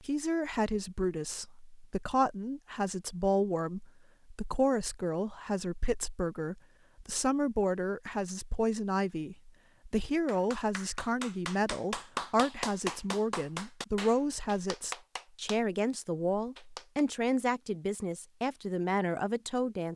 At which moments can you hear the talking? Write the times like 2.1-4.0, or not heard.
0.0-19.9.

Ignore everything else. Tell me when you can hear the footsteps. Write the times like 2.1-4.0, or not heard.
not heard.